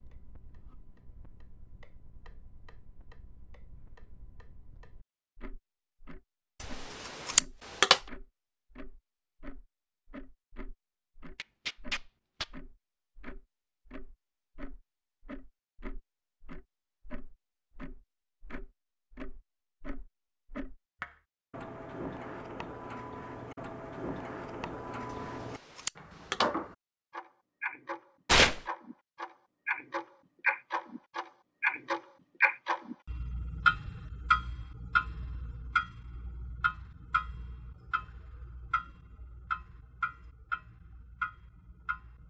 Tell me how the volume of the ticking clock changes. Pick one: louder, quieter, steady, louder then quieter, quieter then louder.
louder.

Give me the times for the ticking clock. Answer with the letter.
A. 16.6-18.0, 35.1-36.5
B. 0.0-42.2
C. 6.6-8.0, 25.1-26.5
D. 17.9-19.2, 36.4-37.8
B.